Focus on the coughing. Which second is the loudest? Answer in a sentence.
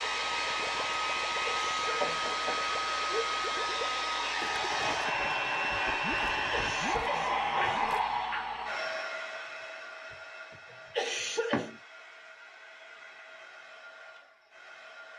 The loudest moment of the coughing is at 11 seconds.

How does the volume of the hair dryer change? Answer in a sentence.
The loudness of the hair dryer goes down.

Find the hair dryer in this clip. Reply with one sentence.
You can hear the hair dryer from 0.0 to 15.1 s.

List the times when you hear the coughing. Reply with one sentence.
The coughing can be heard from 1.4 to 2.3 s, from 6.5 to 8.0 s and from 10.7 to 11.7 s.